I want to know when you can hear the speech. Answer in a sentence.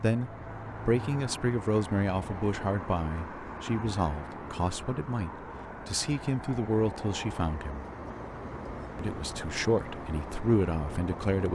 You can hear the speech from 0.0 to 7.8 s and from 8.9 to 11.4 s.